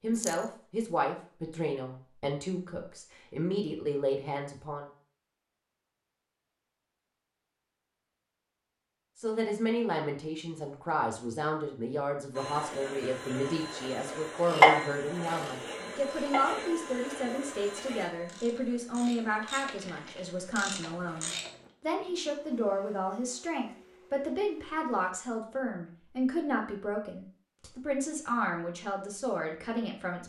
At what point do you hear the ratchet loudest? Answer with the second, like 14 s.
15 s.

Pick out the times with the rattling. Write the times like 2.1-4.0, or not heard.
0.1-0.5.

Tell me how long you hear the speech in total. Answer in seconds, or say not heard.
26 s.